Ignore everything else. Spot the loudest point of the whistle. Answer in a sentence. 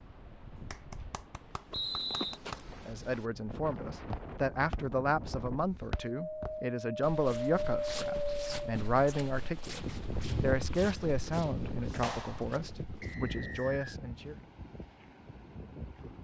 The loudest moment of the whistle is at 2 seconds.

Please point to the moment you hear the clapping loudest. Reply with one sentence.
The loudest moment of the clapping is at 12 seconds.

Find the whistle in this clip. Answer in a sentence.
You can hear the whistle from 1.7 to 2.4 s and from 13.0 to 14.0 s.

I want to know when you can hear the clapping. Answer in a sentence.
You can hear the clapping from 0.7 to 2.6 s and from 12.0 to 12.5 s.